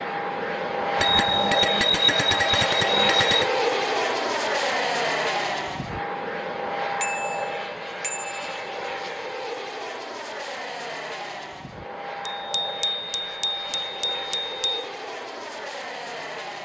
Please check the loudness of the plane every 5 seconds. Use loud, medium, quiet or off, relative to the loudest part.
loud, medium, medium, medium.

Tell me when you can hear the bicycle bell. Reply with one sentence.
The bicycle bell can be heard from 1.0 to 3.5 s, from 7.0 to 8.5 s and from 12.3 to 14.8 s.